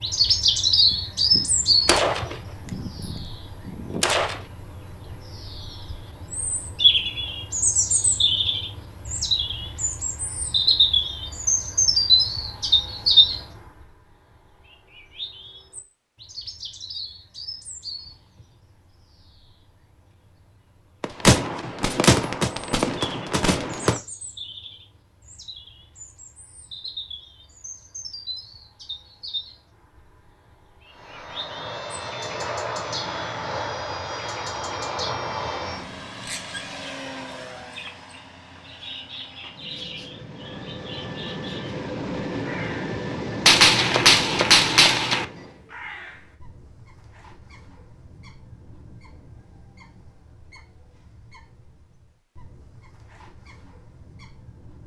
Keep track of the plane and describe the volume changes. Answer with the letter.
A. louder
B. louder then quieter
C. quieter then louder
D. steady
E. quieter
C.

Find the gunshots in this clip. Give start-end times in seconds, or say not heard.
1.3-4.4, 21.0-24.0, 43.5-45.2.